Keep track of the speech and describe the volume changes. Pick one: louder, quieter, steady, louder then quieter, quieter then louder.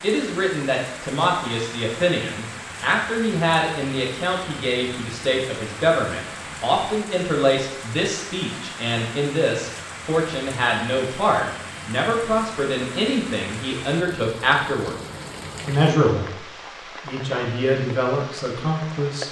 steady.